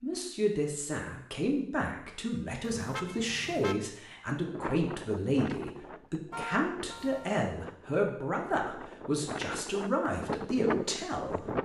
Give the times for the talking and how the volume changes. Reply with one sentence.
You can hear the talking from 0.0 to 11.5 s, at a steady volume.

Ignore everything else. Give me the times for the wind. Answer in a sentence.
You can hear the wind from 4.5 to 11.6 s.